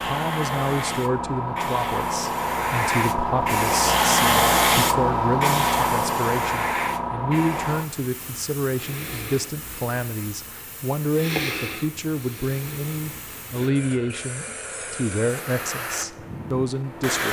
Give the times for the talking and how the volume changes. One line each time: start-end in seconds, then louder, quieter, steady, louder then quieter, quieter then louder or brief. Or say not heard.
0.0-17.2 steady.